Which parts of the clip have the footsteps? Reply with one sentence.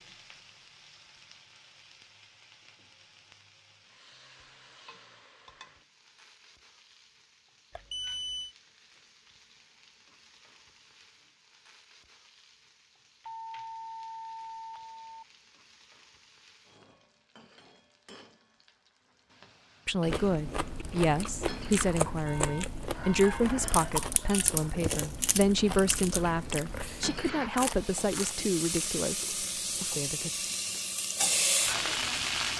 You can't hear the footsteps here.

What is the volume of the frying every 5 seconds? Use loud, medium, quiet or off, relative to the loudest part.
quiet, quiet, quiet, quiet, quiet, medium, loud.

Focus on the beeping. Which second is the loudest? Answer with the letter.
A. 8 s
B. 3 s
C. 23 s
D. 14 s
A.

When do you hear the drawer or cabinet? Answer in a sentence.
The drawer or cabinet can't be heard in this clip.